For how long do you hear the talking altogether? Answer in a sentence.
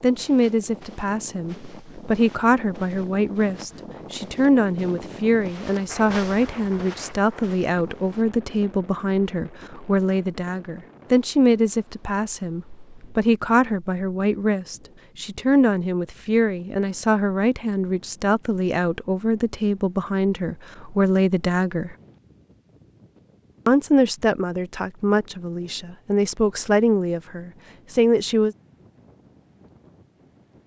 The talking can be heard for 27 seconds in total.